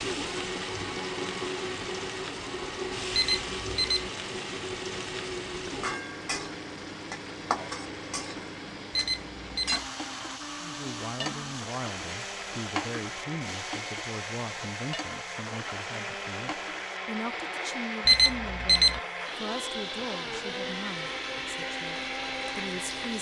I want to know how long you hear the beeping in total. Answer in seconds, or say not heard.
3 s.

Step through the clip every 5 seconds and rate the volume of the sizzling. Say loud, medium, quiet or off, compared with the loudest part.
loud, loud, loud, medium, medium.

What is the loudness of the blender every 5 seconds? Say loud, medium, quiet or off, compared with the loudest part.
loud, medium, medium, loud, loud.